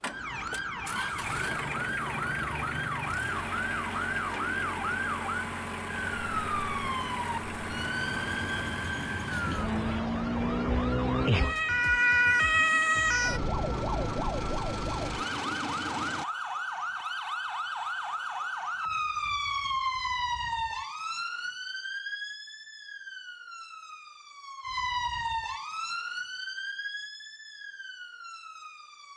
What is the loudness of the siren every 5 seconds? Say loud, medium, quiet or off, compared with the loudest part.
medium, medium, loud, medium, medium, medium.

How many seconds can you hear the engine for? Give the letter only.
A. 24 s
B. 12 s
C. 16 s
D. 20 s
C.